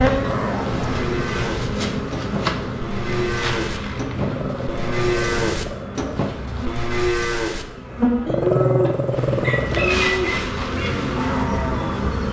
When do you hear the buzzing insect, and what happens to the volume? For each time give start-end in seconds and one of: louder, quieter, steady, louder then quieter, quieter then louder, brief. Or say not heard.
0.0-12.2 quieter then louder.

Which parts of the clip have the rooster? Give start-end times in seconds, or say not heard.
8.4-10.3.